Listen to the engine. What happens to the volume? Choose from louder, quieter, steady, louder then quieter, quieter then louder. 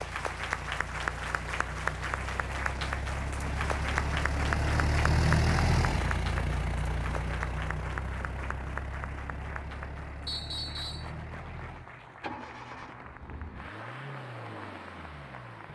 louder then quieter.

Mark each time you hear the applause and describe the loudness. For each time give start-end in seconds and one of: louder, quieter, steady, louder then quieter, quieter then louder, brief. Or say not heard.
0.0-15.7 quieter.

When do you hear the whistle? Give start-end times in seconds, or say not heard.
10.2-11.1.